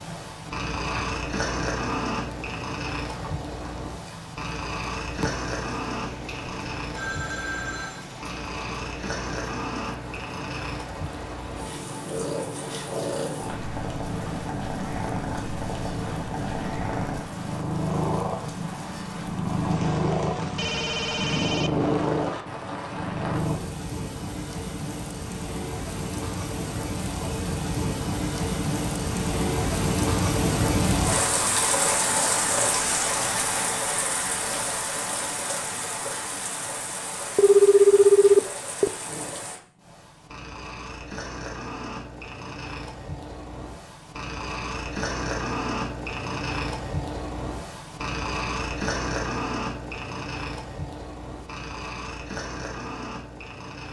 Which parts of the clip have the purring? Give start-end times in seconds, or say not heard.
0.0-23.6, 39.0-53.8.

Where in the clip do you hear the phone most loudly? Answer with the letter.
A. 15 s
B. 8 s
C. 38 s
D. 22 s
C.